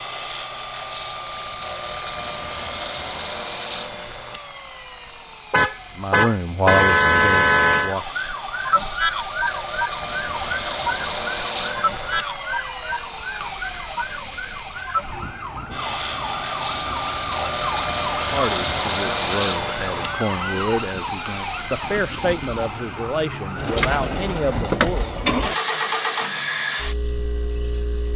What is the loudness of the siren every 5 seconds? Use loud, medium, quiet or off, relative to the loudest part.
off, loud, loud, medium, medium, off.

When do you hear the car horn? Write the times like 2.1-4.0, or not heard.
5.5-8.0.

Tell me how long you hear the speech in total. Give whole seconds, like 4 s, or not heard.
9 s.